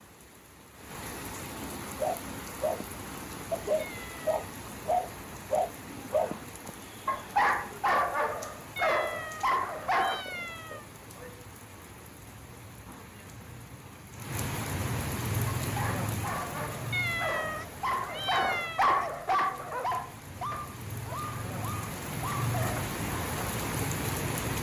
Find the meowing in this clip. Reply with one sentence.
You can hear the meowing from 3.8 to 4.3 s, from 8.8 to 10.8 s and from 16.9 to 19.1 s.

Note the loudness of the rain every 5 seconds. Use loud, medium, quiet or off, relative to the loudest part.
medium, medium, medium, loud, loud.